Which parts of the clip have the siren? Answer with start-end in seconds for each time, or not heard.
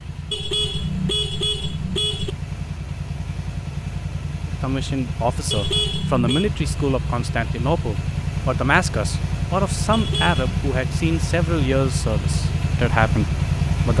not heard.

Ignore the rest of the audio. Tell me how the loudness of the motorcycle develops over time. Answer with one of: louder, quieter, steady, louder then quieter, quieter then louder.
louder.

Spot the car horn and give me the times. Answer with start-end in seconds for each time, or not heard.
0.3-2.3, 5.5-6.5, 9.9-10.6.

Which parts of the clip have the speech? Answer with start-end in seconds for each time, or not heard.
4.5-13.9.